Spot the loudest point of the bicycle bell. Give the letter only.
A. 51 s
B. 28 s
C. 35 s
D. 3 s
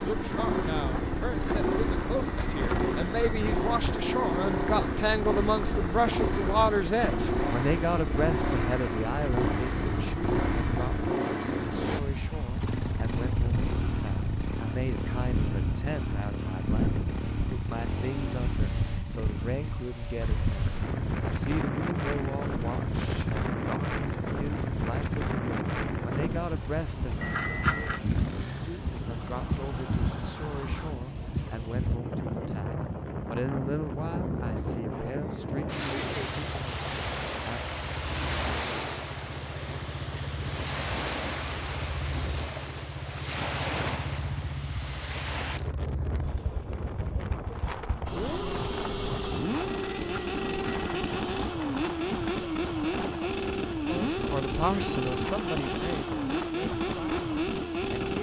B.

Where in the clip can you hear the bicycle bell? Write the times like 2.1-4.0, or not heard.
2.2-3.5, 27.2-28.0, 49.6-51.1.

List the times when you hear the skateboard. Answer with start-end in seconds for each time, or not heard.
not heard.